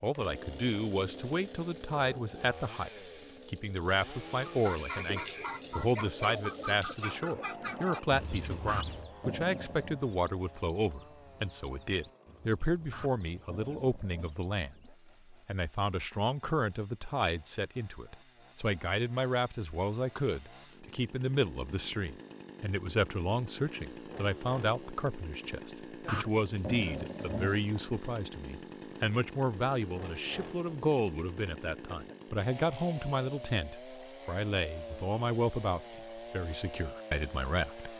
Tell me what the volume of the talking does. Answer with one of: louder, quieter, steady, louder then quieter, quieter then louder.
steady.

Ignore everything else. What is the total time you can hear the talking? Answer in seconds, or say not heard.
38 s.